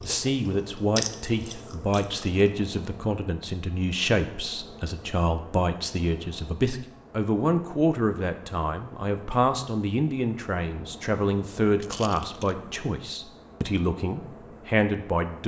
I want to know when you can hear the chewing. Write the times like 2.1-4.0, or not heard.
0.0-2.3.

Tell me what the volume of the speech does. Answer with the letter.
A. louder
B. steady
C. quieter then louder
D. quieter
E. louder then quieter
B.